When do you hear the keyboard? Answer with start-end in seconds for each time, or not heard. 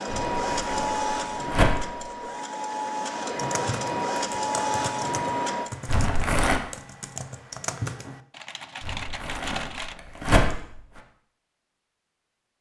3.3-9.9.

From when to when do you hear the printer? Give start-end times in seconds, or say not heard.
0.0-5.7.